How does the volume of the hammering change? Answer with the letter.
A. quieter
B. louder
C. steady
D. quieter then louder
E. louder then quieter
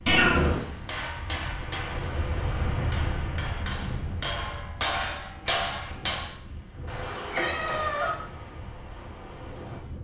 D.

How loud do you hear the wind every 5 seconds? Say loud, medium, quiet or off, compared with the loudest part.
loud, medium.